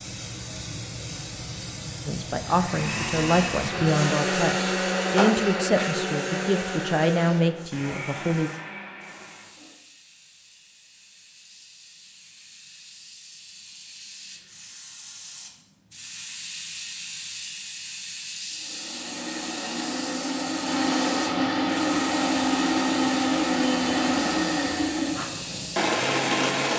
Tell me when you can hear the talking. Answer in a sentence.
The talking can be heard from 2.0 to 8.5 s.